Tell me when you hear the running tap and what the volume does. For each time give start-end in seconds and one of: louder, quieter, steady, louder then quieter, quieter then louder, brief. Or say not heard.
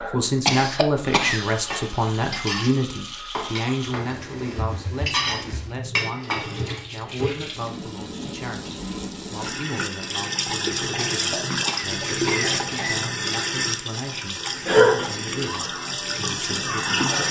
0.0-17.2 louder.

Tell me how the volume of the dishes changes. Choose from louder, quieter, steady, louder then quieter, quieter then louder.
quieter then louder.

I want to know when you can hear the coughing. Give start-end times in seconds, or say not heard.
0.5-1.5, 10.9-13.0.